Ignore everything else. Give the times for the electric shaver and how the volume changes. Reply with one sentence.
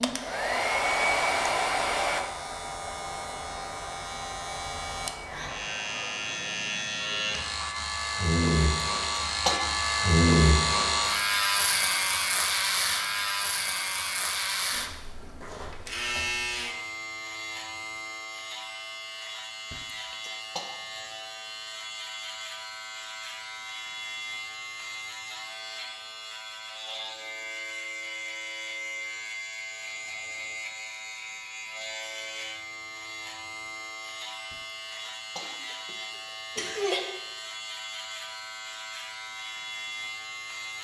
The electric shaver can be heard from 0.0 to 40.7 s, getting louder then quieter.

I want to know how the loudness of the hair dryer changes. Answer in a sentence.
The volume of the hair dryer goes down.